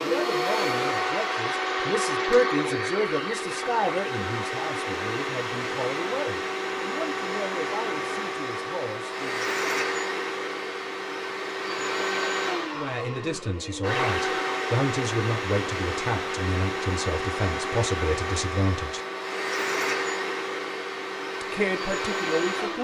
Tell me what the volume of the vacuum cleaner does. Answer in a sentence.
The volume of the vacuum cleaner stays about the same.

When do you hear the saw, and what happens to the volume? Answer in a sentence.
The saw can't be heard in this clip.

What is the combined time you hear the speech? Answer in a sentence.
The speech can be heard for 17 seconds in total.